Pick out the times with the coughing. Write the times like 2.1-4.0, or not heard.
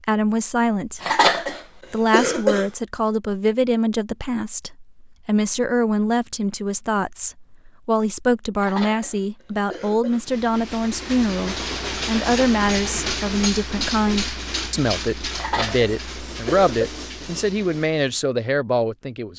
1.0-2.6, 8.6-10.2, 15.3-16.9.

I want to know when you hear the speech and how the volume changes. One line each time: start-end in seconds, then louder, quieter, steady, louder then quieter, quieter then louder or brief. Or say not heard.
0.0-19.3 steady.